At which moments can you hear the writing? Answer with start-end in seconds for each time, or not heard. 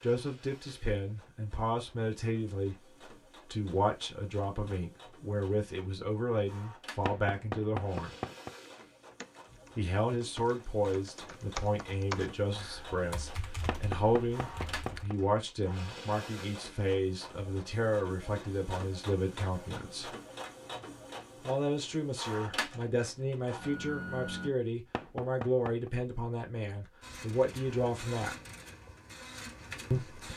not heard.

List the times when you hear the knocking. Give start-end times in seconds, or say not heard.
7.0-8.6, 13.7-15.2, 24.9-25.9.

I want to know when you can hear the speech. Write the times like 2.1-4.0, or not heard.
0.0-8.1, 9.8-20.1, 21.4-28.4, 29.9-30.3.